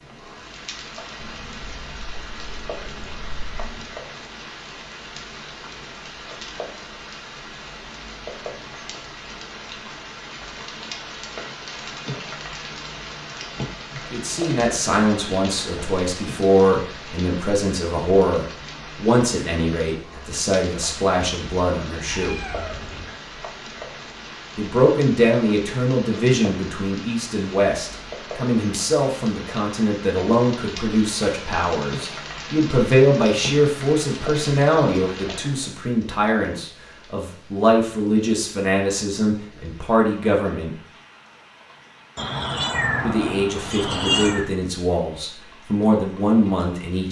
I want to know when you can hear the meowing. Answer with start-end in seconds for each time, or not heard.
1.1-4.0, 22.1-23.1, 42.1-44.5.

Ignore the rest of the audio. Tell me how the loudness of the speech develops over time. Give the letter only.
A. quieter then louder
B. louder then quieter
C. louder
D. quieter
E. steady
E.